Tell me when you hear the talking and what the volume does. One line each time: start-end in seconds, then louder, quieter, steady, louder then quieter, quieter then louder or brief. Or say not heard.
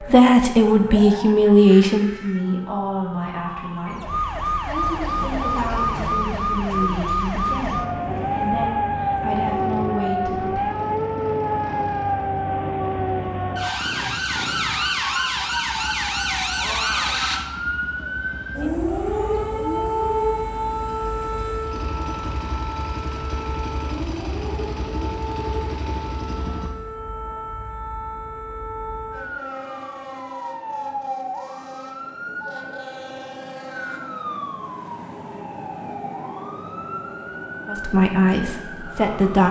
0.0-10.8 quieter
37.6-39.4 brief.